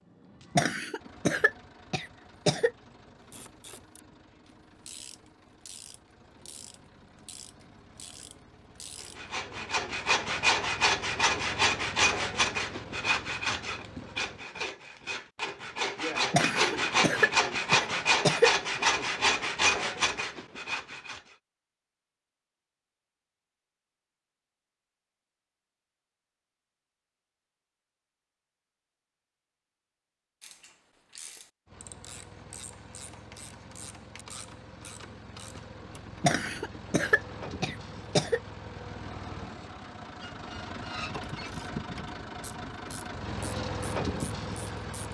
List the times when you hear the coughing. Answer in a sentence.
The coughing can be heard from 0.6 to 2.7 s, from 16.3 to 18.5 s and from 36.2 to 38.4 s.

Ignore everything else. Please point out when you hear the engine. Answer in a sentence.
The engine can be heard from 0.0 to 14.4 s and from 31.6 to 45.0 s.